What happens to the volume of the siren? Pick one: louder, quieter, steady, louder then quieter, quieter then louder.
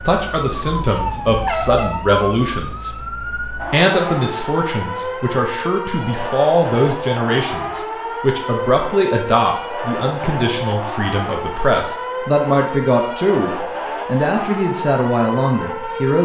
steady.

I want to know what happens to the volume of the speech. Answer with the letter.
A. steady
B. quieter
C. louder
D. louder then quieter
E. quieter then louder
A.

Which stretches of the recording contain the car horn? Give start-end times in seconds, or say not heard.
0.5-2.0.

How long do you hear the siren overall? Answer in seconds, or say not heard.
16 s.